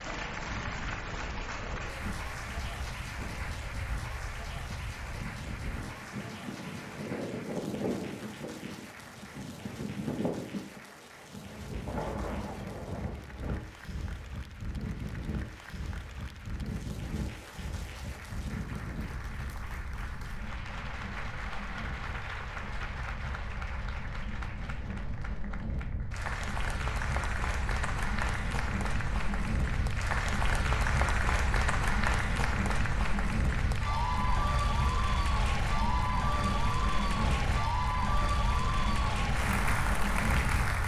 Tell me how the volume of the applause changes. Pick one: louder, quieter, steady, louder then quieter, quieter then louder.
quieter then louder.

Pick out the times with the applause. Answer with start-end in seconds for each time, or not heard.
0.0-40.8.